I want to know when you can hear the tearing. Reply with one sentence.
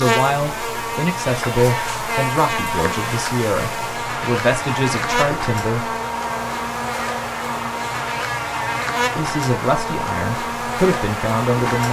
The tearing can't be heard in this clip.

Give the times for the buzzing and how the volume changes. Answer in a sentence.
The buzzing can be heard from 0.0 to 11.8 s, at a steady volume.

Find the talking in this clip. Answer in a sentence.
You can hear the talking from 0.0 to 5.9 s and from 9.2 to 11.8 s.